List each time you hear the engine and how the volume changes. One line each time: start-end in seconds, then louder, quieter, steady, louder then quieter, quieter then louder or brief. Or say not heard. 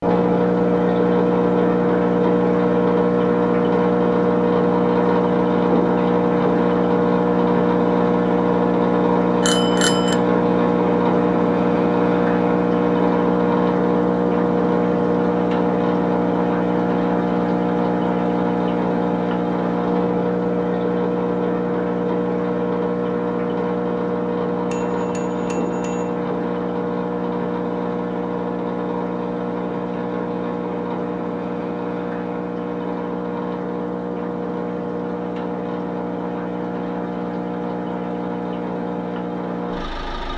0.0-40.3 quieter.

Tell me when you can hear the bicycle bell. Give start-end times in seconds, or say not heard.
9.4-10.2, 24.7-26.1.